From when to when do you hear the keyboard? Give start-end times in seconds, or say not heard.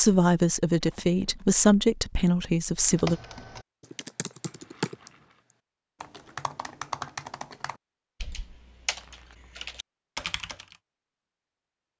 2.8-10.8.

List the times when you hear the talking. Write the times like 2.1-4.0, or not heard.
0.0-3.2.